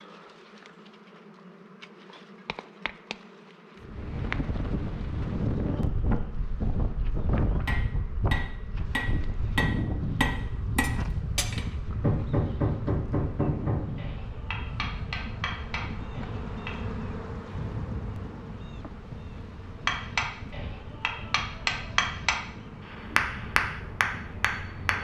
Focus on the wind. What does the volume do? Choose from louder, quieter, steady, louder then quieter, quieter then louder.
quieter.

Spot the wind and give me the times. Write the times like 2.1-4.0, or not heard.
3.8-24.9.